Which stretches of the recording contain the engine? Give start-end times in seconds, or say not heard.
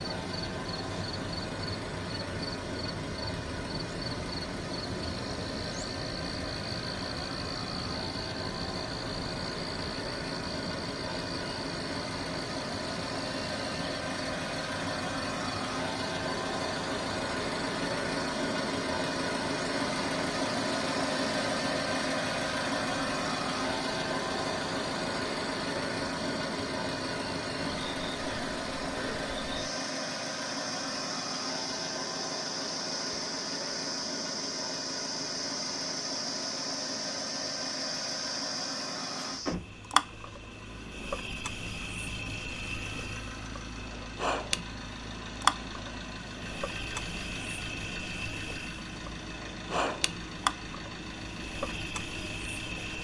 0.0-53.0.